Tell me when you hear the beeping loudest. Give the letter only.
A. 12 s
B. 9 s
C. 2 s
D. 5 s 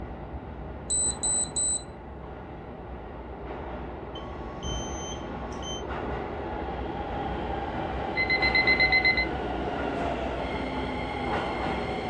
B.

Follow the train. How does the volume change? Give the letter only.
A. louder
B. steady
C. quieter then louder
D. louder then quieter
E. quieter
A.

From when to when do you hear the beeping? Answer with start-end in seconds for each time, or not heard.
0.9-1.9, 4.2-5.8, 8.2-9.2.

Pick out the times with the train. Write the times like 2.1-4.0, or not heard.
0.0-12.0.